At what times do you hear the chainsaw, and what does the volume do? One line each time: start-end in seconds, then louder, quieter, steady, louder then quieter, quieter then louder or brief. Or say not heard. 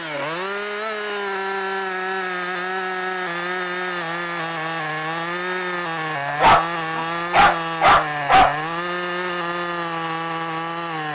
0.0-11.1 steady.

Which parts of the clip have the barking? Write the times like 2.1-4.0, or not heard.
6.2-8.6.